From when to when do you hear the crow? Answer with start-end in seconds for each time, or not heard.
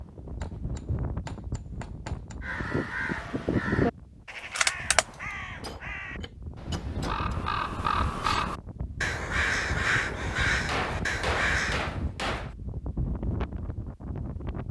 2.4-11.8.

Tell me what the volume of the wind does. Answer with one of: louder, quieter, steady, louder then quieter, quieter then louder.
quieter then louder.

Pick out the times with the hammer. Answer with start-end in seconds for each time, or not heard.
0.4-2.4, 5.6-7.3, 10.7-12.6.